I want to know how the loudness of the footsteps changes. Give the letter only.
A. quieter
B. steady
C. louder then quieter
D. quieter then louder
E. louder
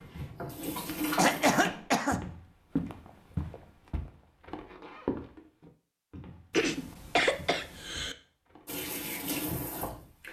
A.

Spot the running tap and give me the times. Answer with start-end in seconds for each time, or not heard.
0.0-1.6, 8.7-10.2.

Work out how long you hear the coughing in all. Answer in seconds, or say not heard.
3 s.